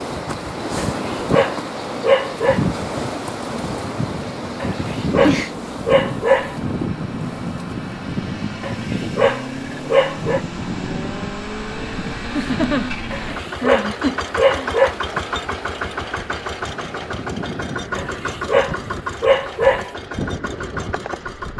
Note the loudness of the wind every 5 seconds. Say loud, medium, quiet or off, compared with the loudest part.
loud, loud, medium, medium, medium.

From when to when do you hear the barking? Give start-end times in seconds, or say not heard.
0.8-2.6, 4.6-6.5, 8.6-10.4, 13.1-14.9, 17.9-19.9.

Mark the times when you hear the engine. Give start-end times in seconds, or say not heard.
0.0-21.5.